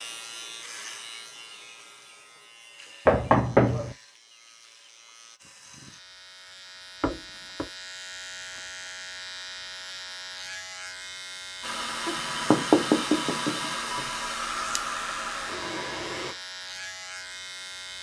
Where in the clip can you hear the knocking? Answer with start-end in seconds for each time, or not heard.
3.0-4.0, 7.0-7.7, 12.1-13.7.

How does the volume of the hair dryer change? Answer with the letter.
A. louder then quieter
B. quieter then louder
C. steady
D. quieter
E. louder
C.